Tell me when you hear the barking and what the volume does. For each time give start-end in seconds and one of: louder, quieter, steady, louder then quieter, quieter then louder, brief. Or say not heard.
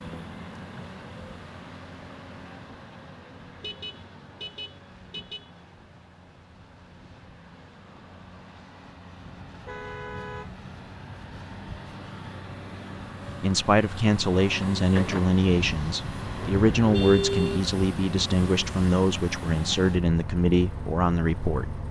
not heard.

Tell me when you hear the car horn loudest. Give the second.
17 s.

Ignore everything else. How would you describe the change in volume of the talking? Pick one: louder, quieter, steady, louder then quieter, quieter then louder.
steady.